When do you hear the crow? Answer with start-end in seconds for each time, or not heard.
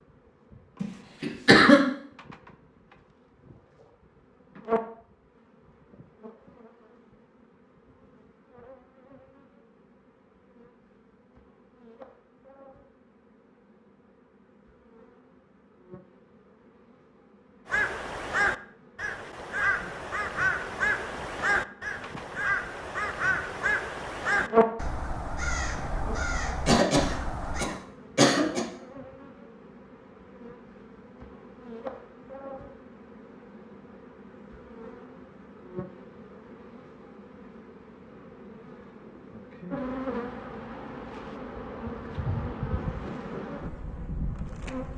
17.6-27.7.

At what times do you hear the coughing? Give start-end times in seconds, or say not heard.
0.8-1.8, 26.6-28.6.